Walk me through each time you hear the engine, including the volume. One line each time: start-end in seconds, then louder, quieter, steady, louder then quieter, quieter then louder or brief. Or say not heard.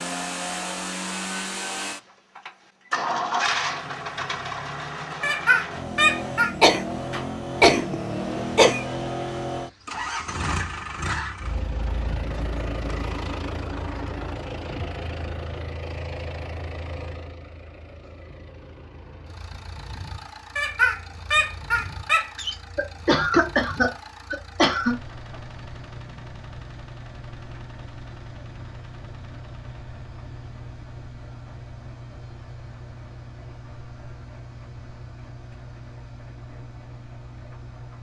0.0-37.9 quieter.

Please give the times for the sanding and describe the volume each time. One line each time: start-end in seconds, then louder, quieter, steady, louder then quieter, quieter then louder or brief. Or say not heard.
not heard.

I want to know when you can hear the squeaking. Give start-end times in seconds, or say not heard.
5.2-6.5, 20.6-22.6.